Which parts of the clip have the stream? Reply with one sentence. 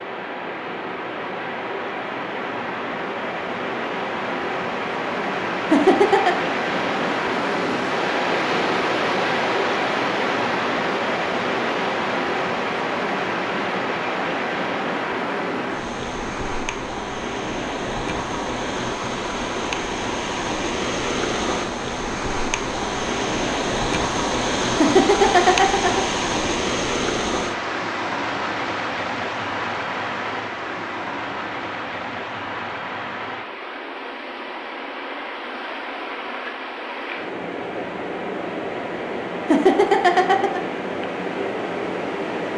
The stream can be heard from 0.0 to 42.5 s.